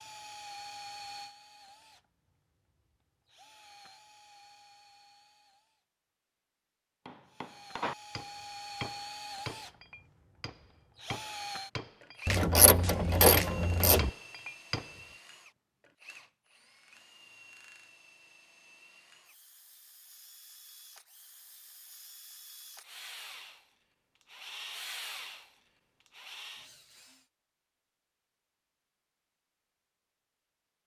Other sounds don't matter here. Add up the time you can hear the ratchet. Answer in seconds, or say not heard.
2 s.